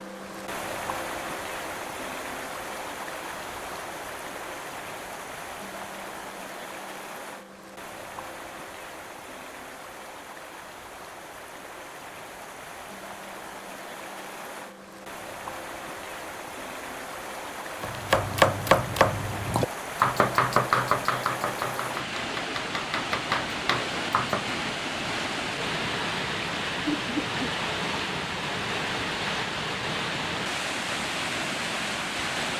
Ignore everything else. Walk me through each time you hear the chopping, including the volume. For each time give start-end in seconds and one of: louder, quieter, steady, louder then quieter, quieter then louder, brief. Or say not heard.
17.8-24.6 quieter then louder.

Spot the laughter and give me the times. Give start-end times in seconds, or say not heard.
26.9-27.5.